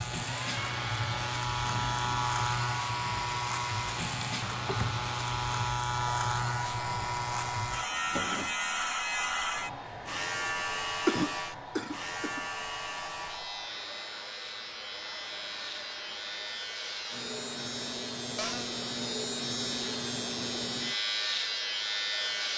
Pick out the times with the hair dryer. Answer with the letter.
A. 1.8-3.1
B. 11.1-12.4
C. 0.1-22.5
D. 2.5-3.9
C.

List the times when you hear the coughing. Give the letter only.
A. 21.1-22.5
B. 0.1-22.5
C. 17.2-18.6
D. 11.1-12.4
D.